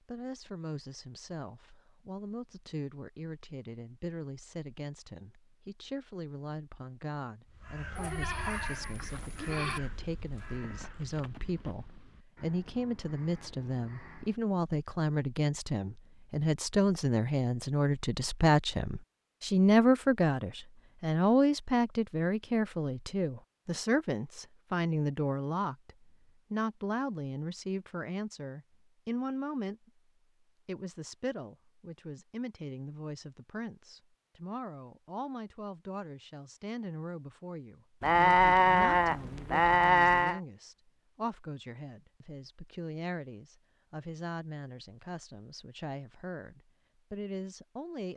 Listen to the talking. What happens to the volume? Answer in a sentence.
The loudness of the talking goes up, then down.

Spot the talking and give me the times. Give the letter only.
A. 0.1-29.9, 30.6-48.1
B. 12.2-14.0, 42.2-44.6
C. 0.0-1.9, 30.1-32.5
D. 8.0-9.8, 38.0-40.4
A.